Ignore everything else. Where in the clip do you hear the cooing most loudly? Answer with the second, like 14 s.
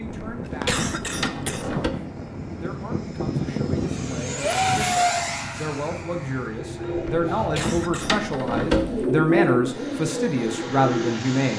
9 s.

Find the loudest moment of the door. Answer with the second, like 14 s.
9 s.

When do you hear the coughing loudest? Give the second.
1 s.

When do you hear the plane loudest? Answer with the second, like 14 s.
5 s.